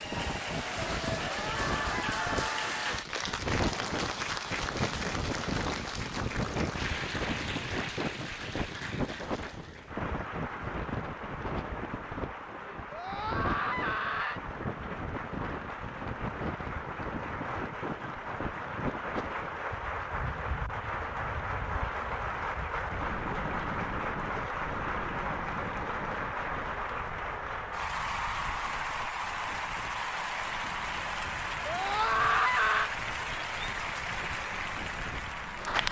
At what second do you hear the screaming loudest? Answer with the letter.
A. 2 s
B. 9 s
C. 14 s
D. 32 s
D.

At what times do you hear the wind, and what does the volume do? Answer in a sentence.
The wind can be heard from 0.0 to 35.8 s, getting quieter.